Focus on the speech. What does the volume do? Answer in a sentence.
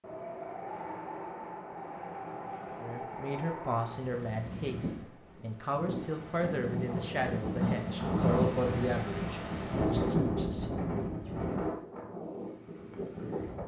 The loudness of the speech stays about the same.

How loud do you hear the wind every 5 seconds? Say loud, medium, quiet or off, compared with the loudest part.
medium, loud, loud.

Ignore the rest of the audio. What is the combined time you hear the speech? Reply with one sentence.
The speech can be heard for 8 seconds in total.